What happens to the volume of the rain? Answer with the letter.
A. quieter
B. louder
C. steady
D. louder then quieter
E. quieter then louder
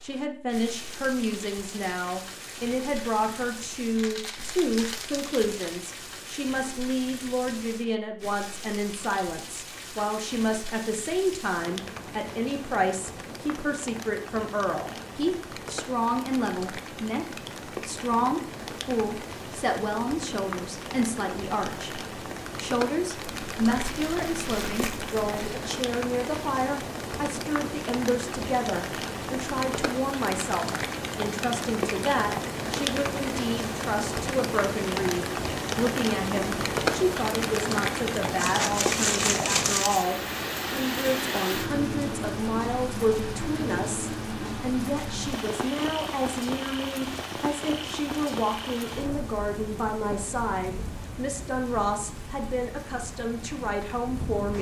D.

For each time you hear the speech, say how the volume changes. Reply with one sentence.
You can hear the speech from 0.0 to 54.5 s, at a steady volume.